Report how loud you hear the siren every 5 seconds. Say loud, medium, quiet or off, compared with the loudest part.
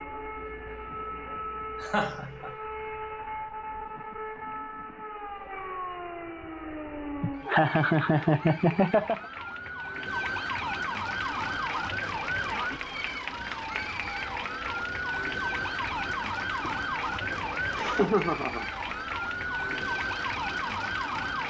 medium, medium, loud, loud, loud.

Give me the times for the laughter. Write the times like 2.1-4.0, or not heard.
1.8-2.5, 7.2-9.2, 17.8-18.6.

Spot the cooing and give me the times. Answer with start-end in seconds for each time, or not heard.
not heard.